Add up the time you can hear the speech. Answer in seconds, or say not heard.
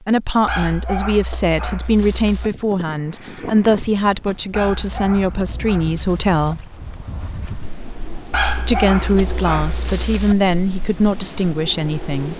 10 s.